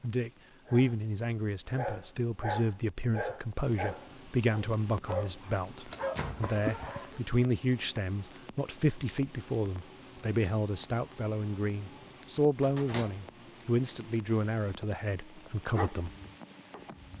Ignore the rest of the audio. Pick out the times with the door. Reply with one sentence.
The door can be heard from 5.9 to 6.5 s and from 12.6 to 13.2 s.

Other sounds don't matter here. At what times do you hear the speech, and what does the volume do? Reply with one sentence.
The speech can be heard from 0.0 to 16.1 s, at a steady volume.